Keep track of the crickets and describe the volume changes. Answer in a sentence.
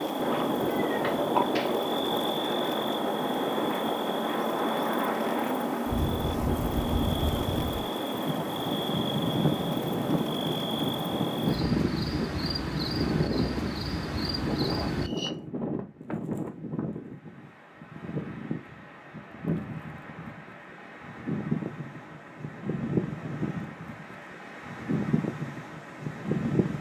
The loudness of the crickets stays about the same.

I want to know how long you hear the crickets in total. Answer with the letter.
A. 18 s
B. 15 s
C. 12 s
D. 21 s
B.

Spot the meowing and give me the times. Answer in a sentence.
You can hear the meowing from 0.3 to 1.8 s.